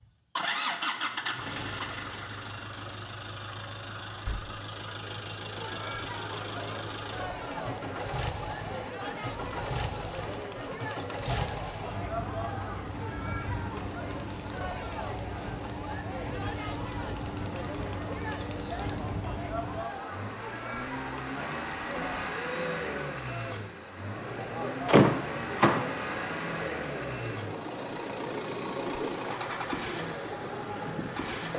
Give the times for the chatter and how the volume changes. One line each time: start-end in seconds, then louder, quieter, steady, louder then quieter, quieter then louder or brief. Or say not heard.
5.4-31.5 steady.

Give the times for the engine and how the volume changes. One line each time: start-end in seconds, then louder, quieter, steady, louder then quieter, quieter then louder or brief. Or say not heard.
0.0-31.5 steady.